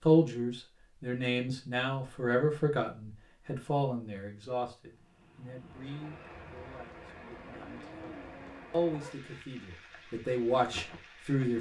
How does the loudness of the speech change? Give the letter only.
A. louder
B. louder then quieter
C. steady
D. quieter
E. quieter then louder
E.